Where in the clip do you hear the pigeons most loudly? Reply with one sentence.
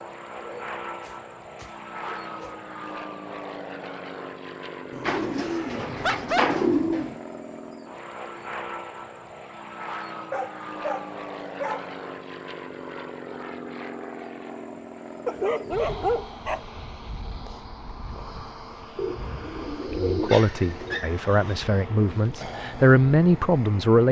The loudest moment of the pigeons is at 7 seconds.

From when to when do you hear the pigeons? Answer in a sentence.
The pigeons can be heard from 5.0 to 7.2 s and from 18.9 to 21.0 s.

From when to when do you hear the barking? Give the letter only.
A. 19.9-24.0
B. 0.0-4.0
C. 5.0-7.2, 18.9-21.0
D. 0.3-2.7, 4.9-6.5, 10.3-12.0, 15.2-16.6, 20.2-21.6
D.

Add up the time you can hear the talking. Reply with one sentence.
You can hear the talking for 4 seconds altogether.